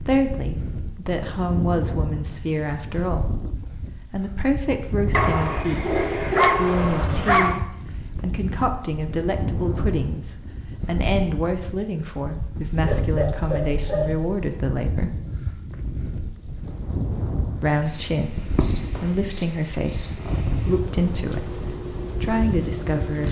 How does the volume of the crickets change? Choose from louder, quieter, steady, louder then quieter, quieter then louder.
steady.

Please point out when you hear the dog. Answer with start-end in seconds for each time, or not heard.
5.1-7.6, 12.6-14.3.